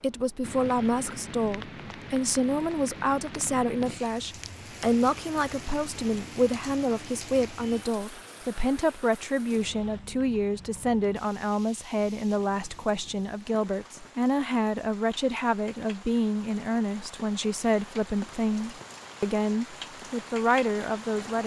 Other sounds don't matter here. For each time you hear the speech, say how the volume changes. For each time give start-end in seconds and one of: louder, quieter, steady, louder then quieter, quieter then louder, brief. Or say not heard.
0.0-21.4 steady.